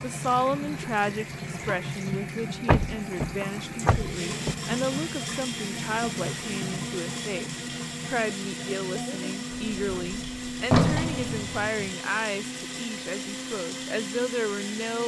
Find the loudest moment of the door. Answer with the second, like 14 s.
11 s.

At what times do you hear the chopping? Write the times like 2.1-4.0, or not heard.
not heard.